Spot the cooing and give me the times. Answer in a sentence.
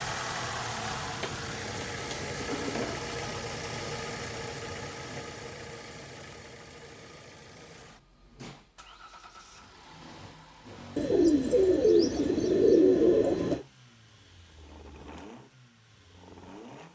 You can hear the cooing from 1.2 to 2.8 s and from 10.9 to 13.7 s.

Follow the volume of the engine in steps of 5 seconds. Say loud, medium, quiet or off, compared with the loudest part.
loud, medium, quiet, quiet.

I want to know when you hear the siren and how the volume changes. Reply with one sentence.
You can't hear the siren here.